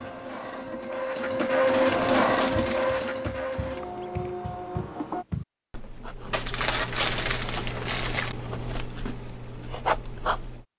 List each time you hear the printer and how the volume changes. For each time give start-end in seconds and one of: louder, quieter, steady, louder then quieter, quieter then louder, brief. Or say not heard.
0.0-5.2 louder then quieter.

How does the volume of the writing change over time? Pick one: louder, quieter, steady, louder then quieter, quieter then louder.
louder.